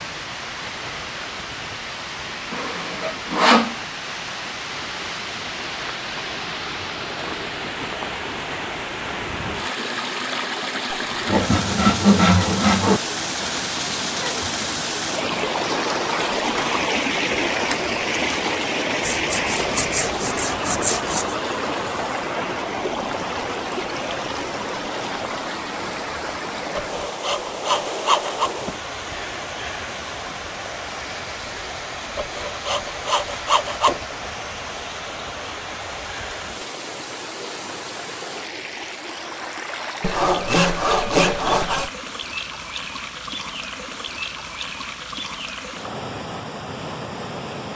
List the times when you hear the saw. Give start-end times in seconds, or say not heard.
2.5-3.8, 11.2-13.0, 19.0-21.4, 26.8-28.5, 32.1-34.0, 40.0-41.9.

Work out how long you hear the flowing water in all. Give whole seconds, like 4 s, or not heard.
48 s.